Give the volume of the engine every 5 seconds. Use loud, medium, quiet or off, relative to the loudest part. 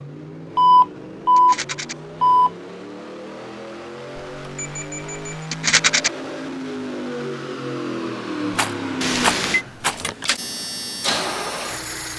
medium, loud, loud.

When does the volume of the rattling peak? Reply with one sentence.
The loudest moment of the rattling is at 6 seconds.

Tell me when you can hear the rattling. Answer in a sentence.
The rattling can be heard from 1.4 to 1.9 s, from 5.5 to 6.1 s and from 8.6 to 9.9 s.